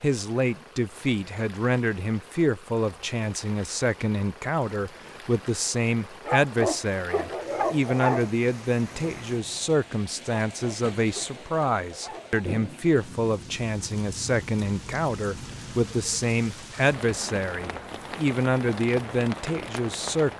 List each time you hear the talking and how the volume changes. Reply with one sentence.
The talking can be heard from 0.0 to 20.3 s, at a steady volume.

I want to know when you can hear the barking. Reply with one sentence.
The barking can be heard from 6.2 to 8.3 s and from 10.5 to 12.4 s.